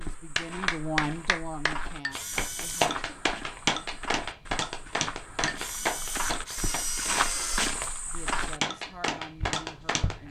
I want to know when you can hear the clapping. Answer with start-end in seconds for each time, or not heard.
0.1-10.2.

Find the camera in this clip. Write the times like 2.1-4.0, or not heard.
2.1-3.0, 5.5-7.8.